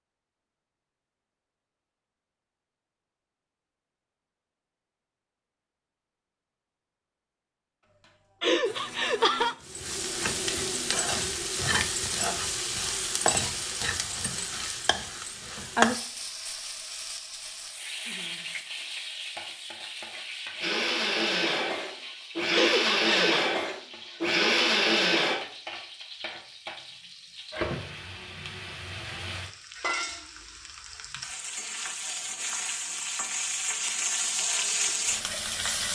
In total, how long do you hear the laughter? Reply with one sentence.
You can hear the laughter for 2 seconds altogether.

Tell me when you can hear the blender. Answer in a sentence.
You can hear the blender from 7.8 to 9.6 s and from 20.6 to 25.4 s.